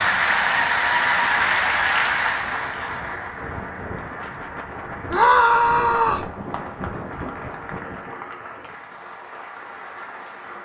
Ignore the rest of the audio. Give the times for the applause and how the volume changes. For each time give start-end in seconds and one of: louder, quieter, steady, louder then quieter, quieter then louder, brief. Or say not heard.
0.0-10.6 quieter.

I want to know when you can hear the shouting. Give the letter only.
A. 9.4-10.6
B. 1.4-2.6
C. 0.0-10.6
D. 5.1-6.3
D.